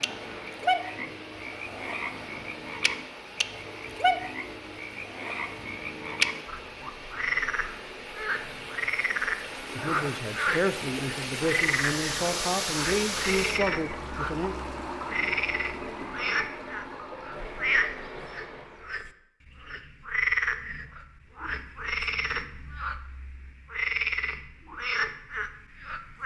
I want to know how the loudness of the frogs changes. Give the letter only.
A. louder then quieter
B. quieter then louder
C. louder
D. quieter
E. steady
E.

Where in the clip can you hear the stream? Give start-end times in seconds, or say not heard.
0.0-18.9.